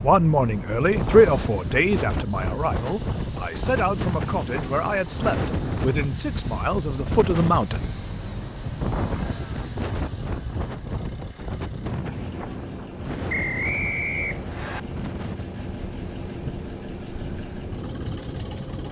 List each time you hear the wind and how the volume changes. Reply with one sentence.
The wind can be heard from 0.0 to 18.8 s, getting quieter.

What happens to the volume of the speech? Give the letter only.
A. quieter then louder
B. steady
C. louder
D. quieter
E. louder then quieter
D.